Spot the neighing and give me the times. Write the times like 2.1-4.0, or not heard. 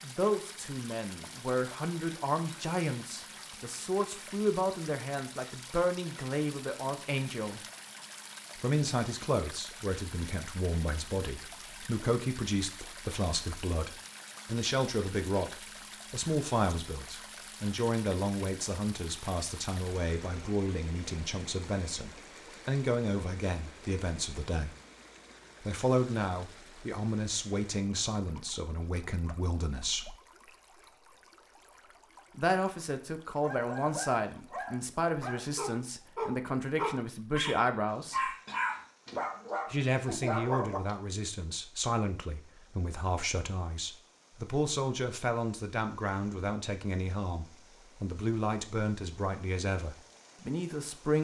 not heard.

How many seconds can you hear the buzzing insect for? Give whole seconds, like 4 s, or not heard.
not heard.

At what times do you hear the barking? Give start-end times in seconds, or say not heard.
33.4-41.0.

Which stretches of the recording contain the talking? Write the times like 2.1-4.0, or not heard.
0.0-7.6, 8.6-24.7, 25.6-30.1, 32.4-38.4, 39.7-51.1.